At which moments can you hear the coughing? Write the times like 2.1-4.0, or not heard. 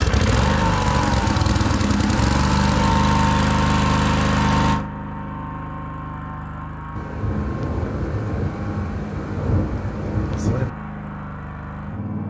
not heard.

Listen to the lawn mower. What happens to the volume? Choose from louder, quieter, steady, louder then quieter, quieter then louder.
quieter.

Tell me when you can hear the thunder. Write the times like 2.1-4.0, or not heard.
7.0-10.7.